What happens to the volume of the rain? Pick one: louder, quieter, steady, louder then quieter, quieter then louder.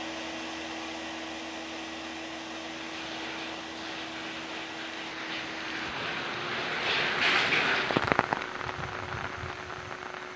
louder then quieter.